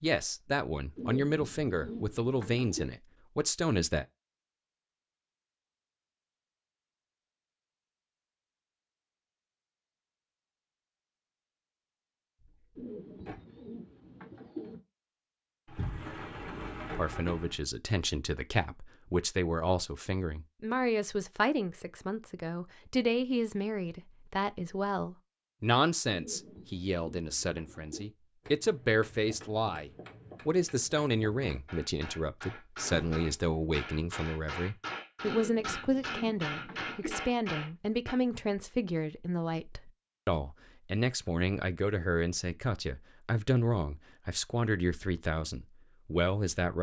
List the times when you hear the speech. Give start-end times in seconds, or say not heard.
0.0-4.0, 16.9-46.7.